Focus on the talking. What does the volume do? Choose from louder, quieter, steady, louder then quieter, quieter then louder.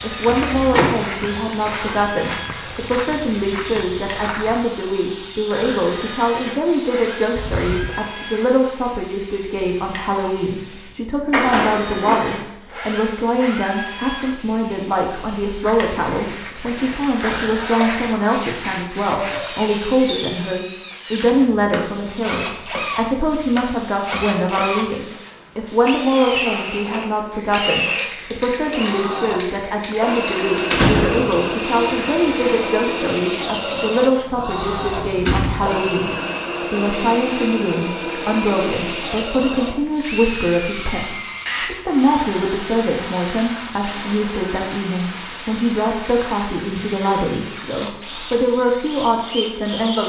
steady.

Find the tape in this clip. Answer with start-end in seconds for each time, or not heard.
not heard.